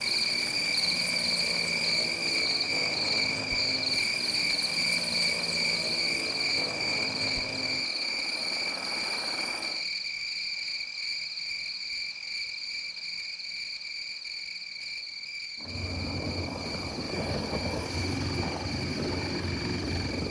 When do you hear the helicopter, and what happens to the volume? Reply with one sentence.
You can hear the helicopter from 0.0 to 9.8 s, at a steady volume; and from 15.6 to 20.2 s, at a steady volume.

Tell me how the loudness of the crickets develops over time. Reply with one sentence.
The volume of the crickets goes down.